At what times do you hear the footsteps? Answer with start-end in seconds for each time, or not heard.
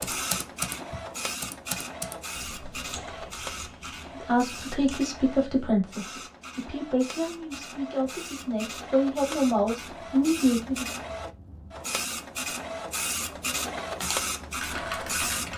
not heard.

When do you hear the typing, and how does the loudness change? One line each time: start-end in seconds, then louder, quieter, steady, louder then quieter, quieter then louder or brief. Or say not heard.
0.0-5.7 quieter
14.0-15.5 brief.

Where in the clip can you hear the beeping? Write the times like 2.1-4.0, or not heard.
not heard.